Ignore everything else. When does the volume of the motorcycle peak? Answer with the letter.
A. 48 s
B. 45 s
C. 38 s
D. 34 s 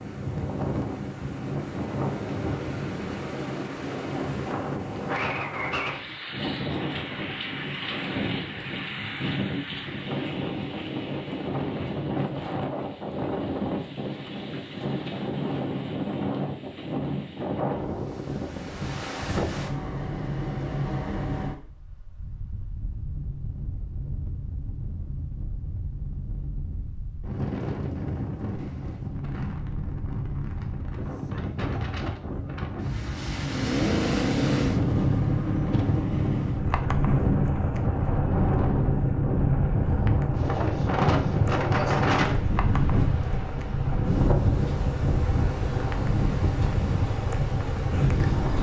D.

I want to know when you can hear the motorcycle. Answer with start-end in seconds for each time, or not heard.
33.4-48.5.